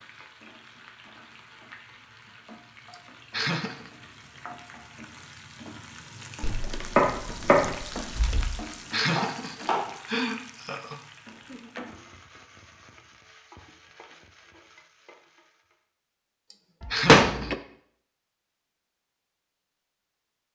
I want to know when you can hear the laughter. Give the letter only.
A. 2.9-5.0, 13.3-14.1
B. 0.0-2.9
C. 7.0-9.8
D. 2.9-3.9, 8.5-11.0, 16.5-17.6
D.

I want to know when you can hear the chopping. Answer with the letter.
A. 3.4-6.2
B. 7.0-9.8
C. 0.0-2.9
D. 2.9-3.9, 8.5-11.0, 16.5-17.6
B.